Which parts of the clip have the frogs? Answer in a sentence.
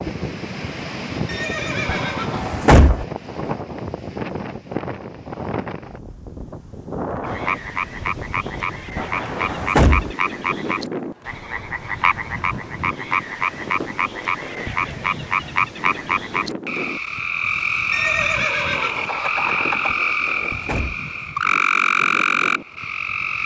The frogs can be heard from 7.2 to 23.4 s.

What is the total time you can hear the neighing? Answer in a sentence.
You can hear the neighing for 3 seconds altogether.